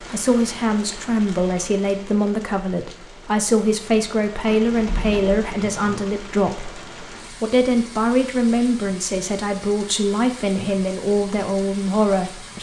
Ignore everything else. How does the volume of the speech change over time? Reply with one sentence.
The loudness of the speech stays about the same.